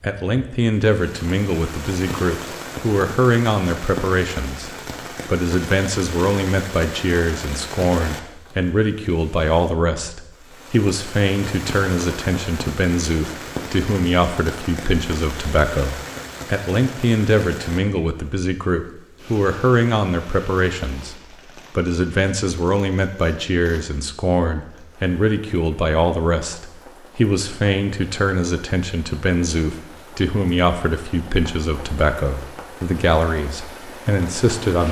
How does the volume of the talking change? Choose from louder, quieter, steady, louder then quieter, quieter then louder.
steady.